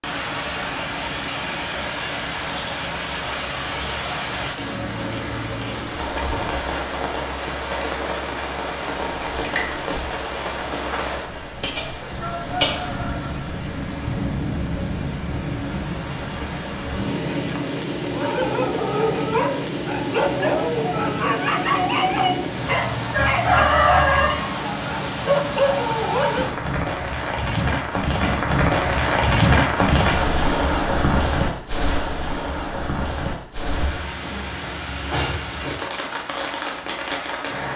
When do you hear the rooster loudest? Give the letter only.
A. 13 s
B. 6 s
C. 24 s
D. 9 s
C.